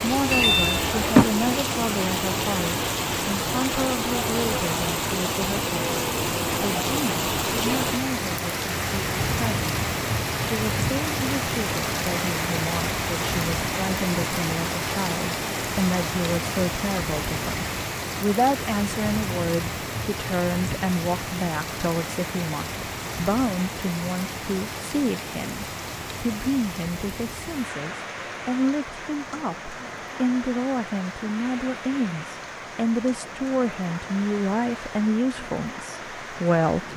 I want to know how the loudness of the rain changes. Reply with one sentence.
The volume of the rain goes down.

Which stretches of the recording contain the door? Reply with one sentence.
The door can be heard from 0.3 to 1.2 s.